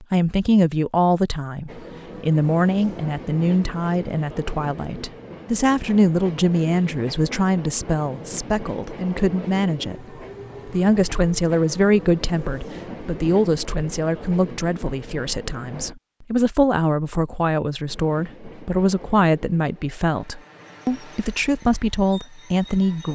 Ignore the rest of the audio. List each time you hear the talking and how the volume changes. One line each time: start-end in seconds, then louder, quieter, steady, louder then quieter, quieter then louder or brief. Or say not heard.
0.0-23.1 steady.